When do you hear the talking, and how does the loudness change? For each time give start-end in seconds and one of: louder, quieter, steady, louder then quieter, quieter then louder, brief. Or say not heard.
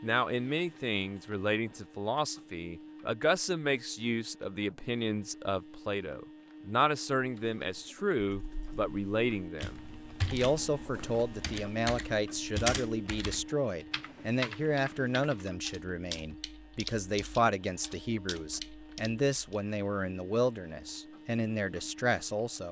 0.0-22.6 steady.